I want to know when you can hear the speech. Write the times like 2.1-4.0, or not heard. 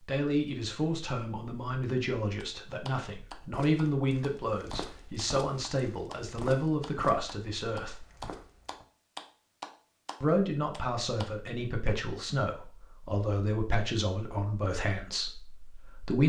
0.1-8.1, 10.2-16.2.